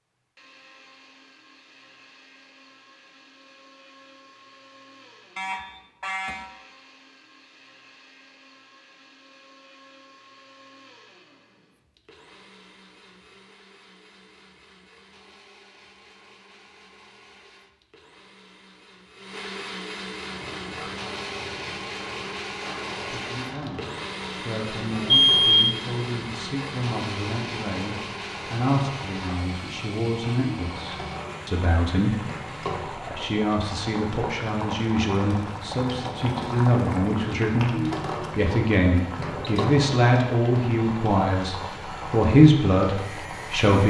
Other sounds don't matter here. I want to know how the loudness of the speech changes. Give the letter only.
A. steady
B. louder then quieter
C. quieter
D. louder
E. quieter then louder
D.